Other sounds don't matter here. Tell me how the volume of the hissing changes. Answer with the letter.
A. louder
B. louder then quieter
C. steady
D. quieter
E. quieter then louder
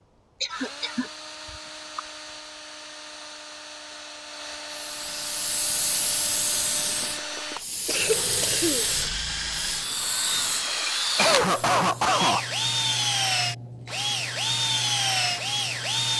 D.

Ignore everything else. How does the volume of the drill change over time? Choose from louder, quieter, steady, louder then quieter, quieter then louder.
louder.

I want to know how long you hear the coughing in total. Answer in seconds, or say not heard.
5 s.